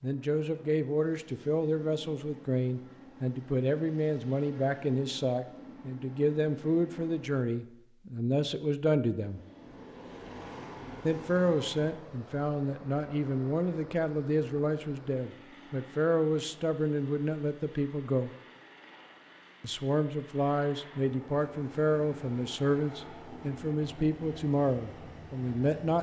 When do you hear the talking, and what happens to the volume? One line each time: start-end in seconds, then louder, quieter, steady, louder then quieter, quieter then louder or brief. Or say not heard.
0.0-9.4 steady
11.0-18.3 steady
19.6-25.9 steady.